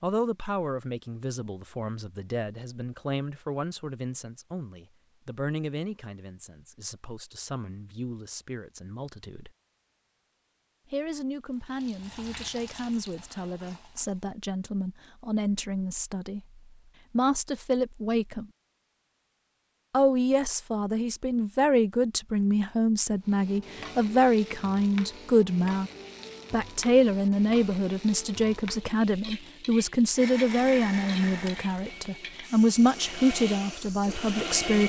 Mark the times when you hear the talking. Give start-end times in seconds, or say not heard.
0.0-9.5, 10.9-18.5, 19.9-25.9, 26.5-34.8.